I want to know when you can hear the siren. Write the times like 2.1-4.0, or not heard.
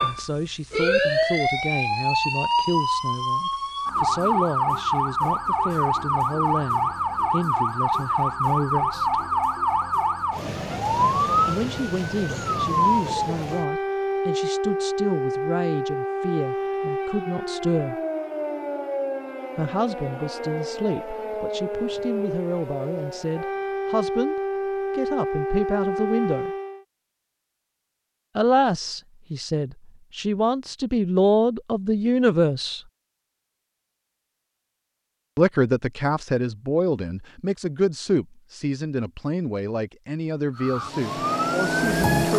0.0-26.8, 40.5-42.3.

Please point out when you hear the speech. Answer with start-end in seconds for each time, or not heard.
0.0-9.2, 11.4-17.9, 19.6-24.4, 24.9-26.5, 28.4-32.8, 35.4-42.3.